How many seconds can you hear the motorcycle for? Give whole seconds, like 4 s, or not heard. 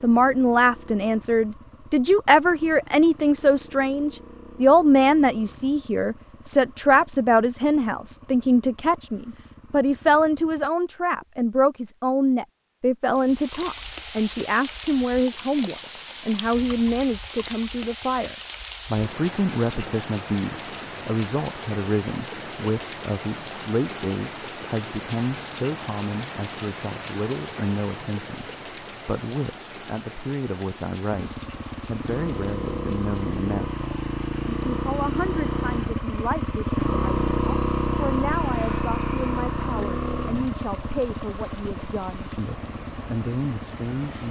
24 s.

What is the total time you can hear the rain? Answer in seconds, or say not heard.
31 s.